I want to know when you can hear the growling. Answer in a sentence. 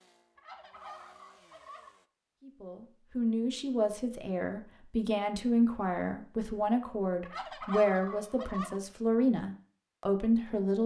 You can't hear the growling here.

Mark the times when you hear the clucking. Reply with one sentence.
The clucking can be heard from 0.3 to 1.9 s and from 7.2 to 8.8 s.